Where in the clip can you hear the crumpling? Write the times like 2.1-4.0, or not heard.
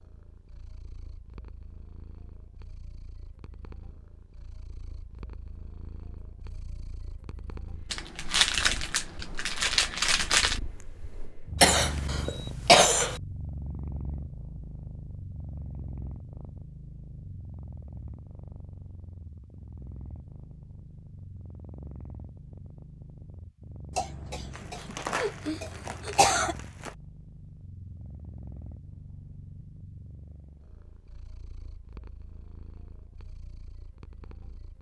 7.9-10.6, 24.5-26.9.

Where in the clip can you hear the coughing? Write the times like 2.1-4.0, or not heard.
11.6-13.2, 23.9-26.6.